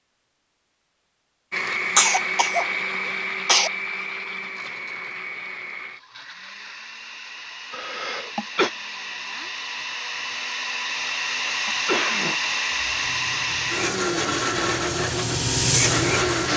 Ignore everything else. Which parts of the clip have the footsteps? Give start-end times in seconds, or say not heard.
not heard.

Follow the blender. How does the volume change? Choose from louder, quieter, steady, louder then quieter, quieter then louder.
quieter then louder.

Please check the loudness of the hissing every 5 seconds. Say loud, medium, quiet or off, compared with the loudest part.
off, off, quiet, loud.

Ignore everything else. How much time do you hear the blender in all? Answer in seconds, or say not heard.
15 s.